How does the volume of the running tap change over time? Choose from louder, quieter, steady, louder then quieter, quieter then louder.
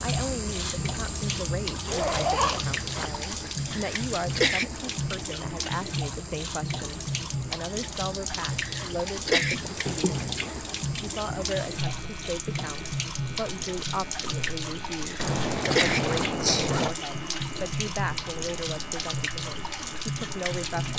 steady.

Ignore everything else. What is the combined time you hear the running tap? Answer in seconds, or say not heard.
21 s.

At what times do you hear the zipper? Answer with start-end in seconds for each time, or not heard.
1.9-3.1, 9.6-10.6, 15.2-16.9.